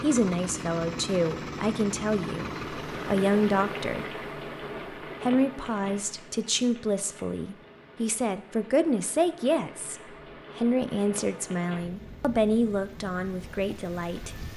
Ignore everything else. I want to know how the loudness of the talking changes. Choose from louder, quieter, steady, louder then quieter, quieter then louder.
steady.